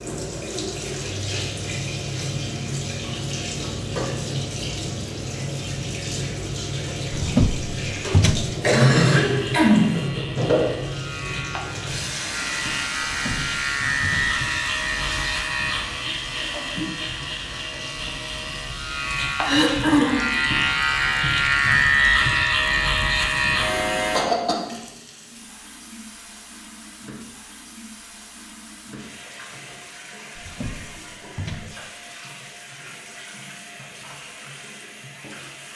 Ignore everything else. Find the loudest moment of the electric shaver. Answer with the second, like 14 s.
22 s.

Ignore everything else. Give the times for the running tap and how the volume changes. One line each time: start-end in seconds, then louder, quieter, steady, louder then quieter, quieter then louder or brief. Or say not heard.
0.0-35.7 quieter.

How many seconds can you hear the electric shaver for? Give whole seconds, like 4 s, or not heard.
15 s.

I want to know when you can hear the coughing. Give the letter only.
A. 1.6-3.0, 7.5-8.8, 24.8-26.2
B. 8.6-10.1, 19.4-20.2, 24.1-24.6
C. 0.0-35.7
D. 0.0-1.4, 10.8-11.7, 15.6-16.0
B.